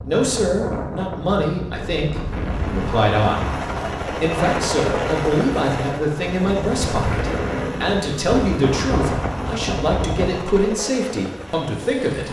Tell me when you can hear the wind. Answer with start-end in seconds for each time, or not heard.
0.0-10.4.